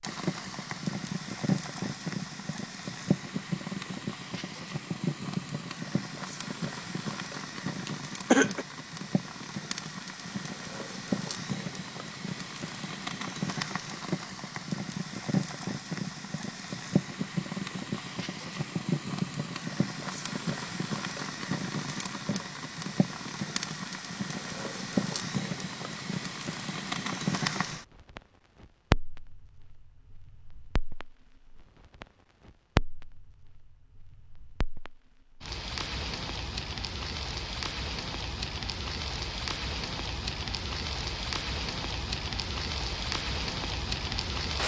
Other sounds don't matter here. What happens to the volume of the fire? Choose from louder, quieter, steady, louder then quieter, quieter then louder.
steady.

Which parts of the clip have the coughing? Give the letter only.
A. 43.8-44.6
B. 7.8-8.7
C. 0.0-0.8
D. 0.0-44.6
B.